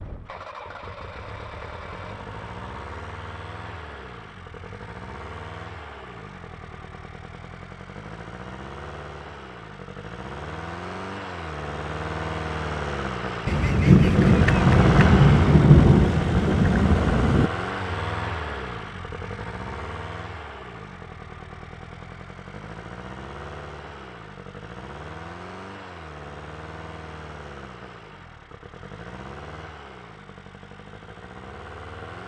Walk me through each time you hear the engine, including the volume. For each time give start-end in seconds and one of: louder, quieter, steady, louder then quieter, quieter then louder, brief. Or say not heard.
0.0-32.2 louder then quieter.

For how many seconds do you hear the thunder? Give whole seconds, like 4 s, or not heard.
4 s.